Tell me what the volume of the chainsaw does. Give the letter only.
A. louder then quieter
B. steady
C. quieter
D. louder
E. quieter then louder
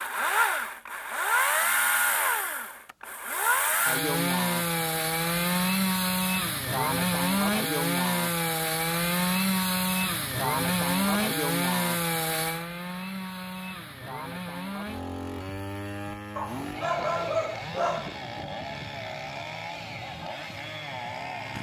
C.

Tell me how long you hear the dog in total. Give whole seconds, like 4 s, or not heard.
2 s.